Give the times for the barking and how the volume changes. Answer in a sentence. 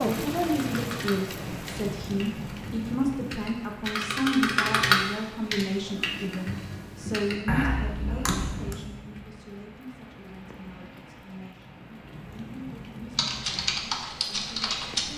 You can't hear the barking here.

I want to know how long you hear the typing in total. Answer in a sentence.
The typing can be heard for 11 seconds in total.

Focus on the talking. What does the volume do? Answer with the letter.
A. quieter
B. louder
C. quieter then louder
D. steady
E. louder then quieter
A.